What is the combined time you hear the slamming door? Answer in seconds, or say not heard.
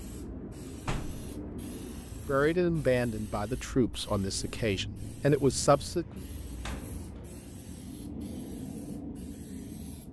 2 s.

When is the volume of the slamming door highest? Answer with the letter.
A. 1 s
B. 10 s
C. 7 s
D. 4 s
A.